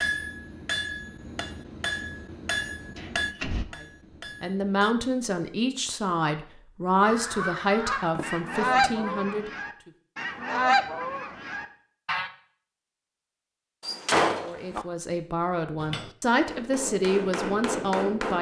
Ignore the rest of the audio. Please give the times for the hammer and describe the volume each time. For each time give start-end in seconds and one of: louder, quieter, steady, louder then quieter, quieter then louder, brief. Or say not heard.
0.0-5.0 quieter
15.8-18.3 brief.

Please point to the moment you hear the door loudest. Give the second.
14 s.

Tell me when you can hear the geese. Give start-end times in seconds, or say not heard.
7.0-12.3.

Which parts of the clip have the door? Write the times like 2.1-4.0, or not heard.
3.0-3.6, 8.2-9.5, 13.8-14.8.